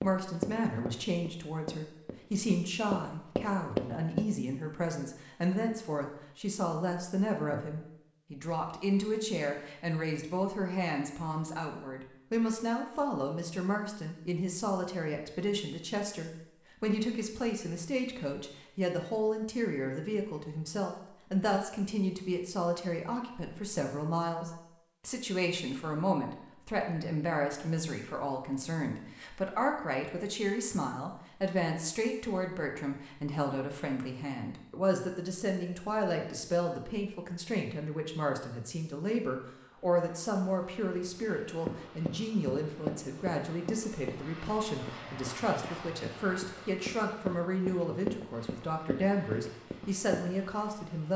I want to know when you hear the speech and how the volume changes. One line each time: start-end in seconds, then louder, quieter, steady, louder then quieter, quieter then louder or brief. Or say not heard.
0.0-51.1 steady.